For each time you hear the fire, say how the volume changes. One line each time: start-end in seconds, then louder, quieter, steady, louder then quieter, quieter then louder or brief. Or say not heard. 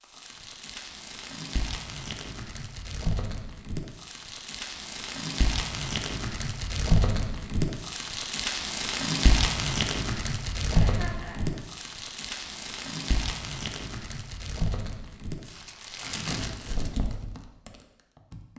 0.1-18.5 louder then quieter.